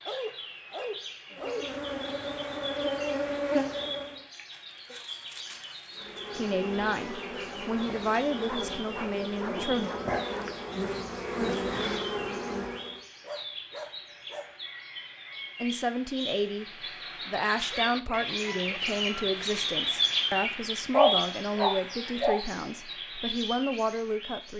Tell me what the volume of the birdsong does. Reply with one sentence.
The volume of the birdsong goes up.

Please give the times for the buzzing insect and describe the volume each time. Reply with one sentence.
The buzzing insect can be heard briefly from 1.3 to 4.2 s; and from 6.0 to 13.1 s, getting louder.